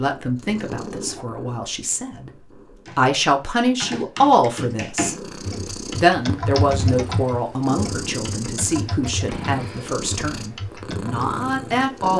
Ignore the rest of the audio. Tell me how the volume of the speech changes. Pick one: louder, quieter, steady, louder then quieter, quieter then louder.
louder then quieter.